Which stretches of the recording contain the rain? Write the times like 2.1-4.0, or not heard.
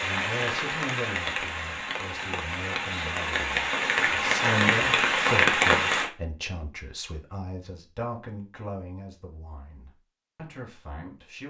0.0-6.1.